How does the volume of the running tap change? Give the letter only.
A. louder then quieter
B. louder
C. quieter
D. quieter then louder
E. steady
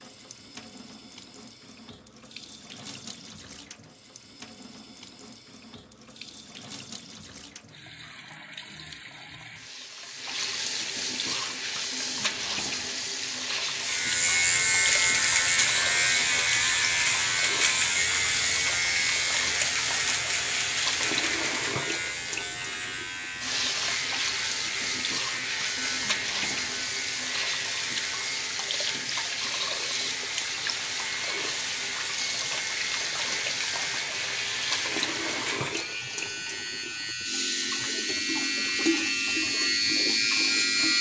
B.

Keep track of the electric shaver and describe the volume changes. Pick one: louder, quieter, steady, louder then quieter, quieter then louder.
quieter then louder.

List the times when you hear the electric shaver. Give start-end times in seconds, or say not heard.
13.8-40.9.